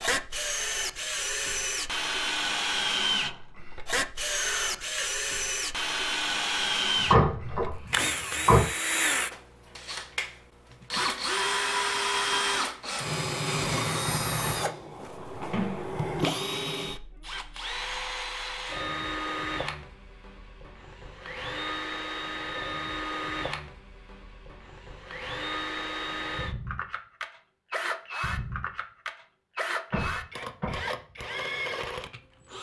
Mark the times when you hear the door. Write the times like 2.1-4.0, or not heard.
7.0-8.7, 15.5-16.0, 29.9-30.8.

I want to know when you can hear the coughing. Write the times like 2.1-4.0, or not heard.
4.2-5.0.